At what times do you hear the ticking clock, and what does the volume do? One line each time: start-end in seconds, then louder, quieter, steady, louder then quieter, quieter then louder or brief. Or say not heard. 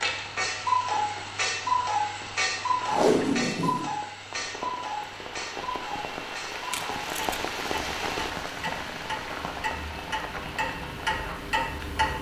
0.0-12.1 quieter then louder.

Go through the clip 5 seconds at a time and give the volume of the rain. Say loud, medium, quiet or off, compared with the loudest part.
medium, loud, medium.